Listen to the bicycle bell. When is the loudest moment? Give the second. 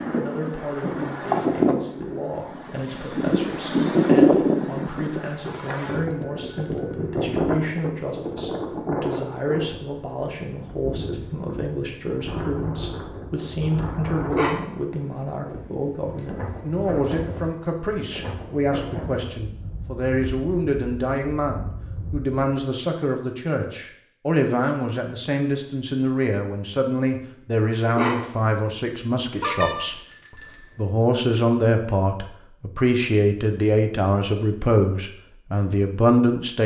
30 s.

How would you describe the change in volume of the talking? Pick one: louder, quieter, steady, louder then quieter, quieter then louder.
louder.